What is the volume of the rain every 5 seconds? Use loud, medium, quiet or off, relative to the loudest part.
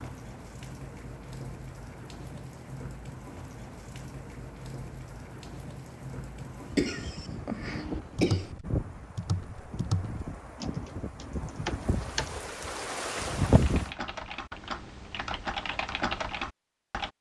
medium, medium, loud, off.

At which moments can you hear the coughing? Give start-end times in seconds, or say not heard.
6.8-8.6.